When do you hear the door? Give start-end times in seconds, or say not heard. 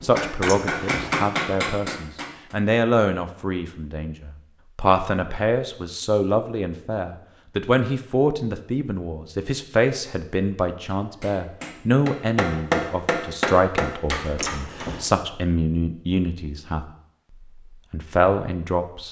0.5-1.2, 14.3-15.1.